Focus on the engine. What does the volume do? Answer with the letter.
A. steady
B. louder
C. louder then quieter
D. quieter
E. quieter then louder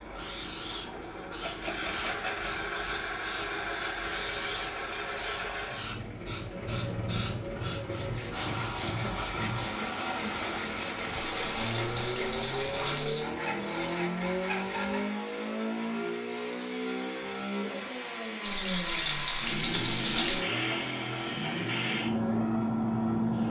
A.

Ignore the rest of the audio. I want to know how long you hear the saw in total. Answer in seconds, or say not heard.
7 s.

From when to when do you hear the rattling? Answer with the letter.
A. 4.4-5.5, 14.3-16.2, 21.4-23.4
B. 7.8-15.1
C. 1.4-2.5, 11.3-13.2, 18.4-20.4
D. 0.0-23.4
C.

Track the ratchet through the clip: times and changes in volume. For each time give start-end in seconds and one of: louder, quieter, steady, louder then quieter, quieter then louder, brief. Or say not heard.
not heard.